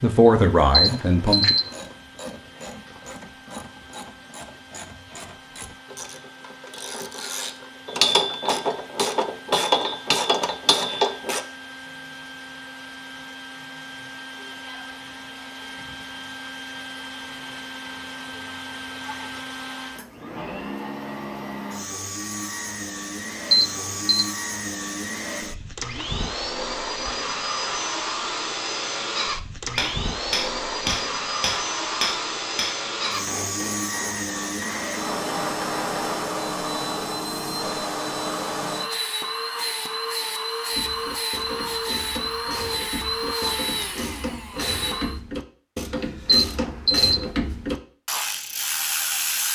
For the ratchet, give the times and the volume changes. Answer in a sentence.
The ratchet can be heard from 0.7 to 11.4 s, getting louder; and from 40.7 to 49.5 s, getting louder.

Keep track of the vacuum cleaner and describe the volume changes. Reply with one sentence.
The loudness of the vacuum cleaner goes up.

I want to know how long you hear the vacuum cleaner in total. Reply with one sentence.
You can hear the vacuum cleaner for 45 seconds altogether.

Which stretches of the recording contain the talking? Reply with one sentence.
You can hear the talking from 0.0 to 1.6 s.